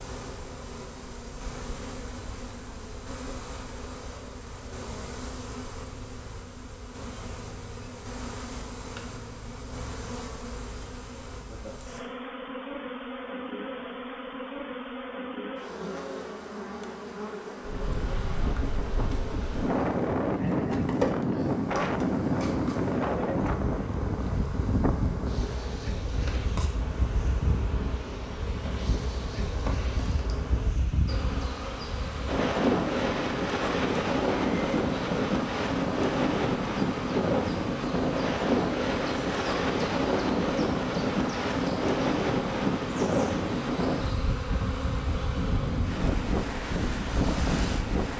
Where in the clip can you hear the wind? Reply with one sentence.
The wind can be heard from 17.6 to 48.1 s.